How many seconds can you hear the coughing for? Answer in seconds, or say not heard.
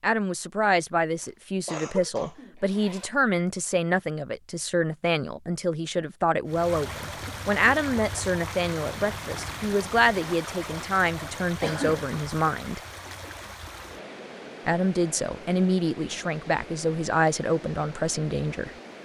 2 s.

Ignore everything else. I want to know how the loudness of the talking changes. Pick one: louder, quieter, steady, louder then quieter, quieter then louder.
steady.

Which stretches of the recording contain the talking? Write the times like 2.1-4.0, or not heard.
0.0-12.8, 14.7-18.7.